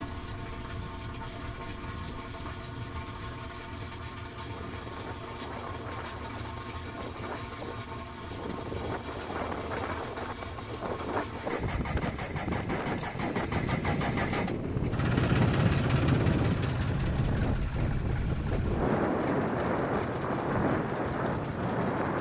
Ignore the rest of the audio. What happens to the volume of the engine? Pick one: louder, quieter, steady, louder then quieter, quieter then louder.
louder then quieter.